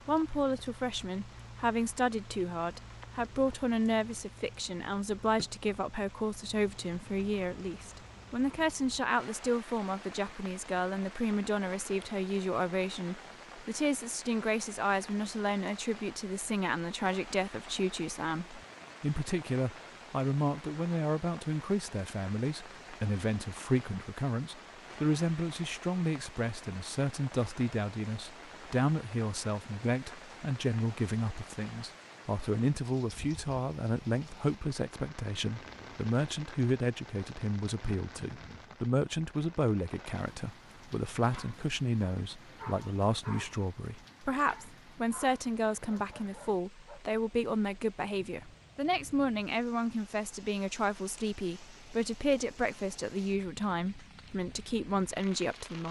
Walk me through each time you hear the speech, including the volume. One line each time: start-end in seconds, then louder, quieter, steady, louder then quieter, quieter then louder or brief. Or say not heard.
0.1-55.8 steady.